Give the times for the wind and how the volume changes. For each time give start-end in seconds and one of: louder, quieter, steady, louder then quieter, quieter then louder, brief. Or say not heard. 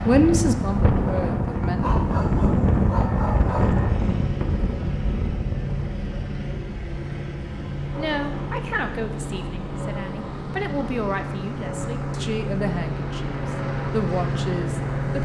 0.0-15.1 quieter.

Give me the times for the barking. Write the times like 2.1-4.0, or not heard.
1.8-3.8.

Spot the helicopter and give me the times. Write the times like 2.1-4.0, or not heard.
0.0-15.1.